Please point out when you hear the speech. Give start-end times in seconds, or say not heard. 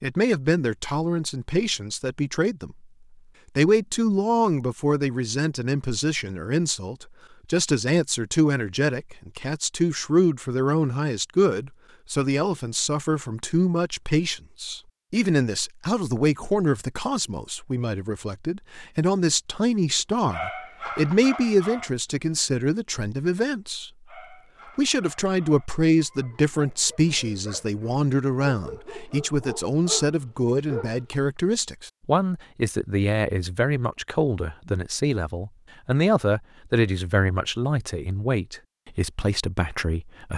0.0-2.8, 3.5-23.9, 24.8-40.3.